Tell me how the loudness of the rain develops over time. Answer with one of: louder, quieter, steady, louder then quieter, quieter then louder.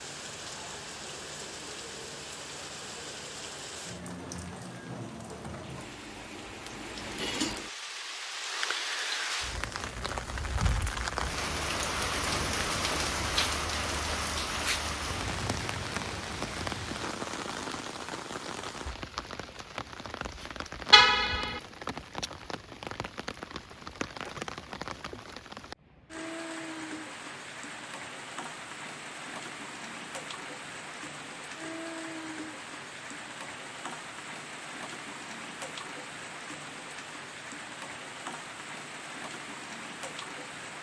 louder then quieter.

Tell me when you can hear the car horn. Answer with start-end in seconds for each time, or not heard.
20.9-21.6.